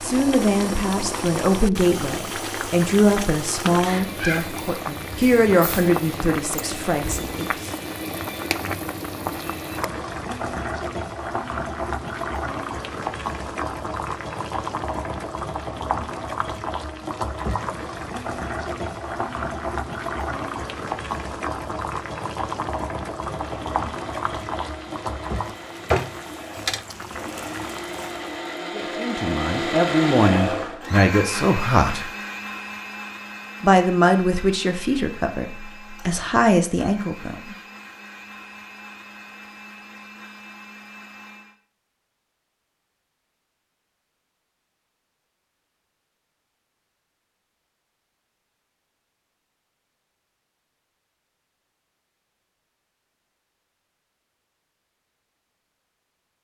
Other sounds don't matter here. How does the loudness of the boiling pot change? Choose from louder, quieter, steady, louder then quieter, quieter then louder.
steady.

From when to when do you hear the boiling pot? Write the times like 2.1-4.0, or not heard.
0.0-28.5.